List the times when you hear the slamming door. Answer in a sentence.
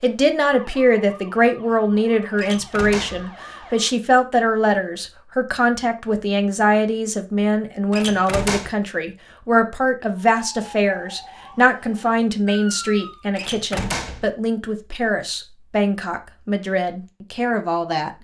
The slamming door can be heard from 2.4 to 3.3 s, from 7.9 to 8.8 s and from 13.3 to 14.3 s.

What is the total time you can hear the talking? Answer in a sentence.
The talking can be heard for 18 seconds in total.